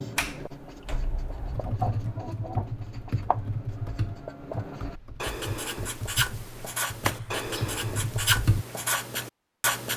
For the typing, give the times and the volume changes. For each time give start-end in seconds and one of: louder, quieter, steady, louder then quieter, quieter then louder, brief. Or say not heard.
1.5-8.7 quieter then louder.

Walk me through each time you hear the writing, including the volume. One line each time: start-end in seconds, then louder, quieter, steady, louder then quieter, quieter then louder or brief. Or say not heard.
0.0-9.9 louder.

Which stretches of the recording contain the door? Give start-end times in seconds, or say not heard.
0.1-1.6, 7.0-7.5.